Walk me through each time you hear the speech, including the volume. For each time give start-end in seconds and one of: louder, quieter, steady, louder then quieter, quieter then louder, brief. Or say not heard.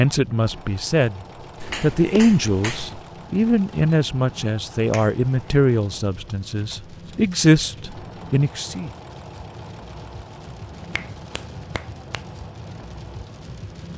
0.0-1.2 brief
1.8-8.9 quieter then louder.